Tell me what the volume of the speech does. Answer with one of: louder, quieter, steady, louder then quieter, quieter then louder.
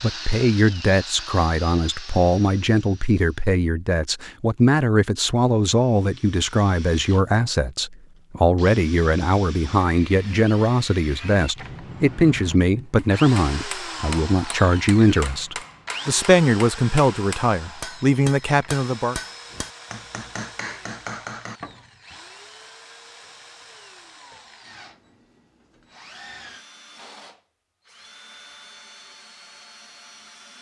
steady.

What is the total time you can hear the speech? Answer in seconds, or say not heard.
19 s.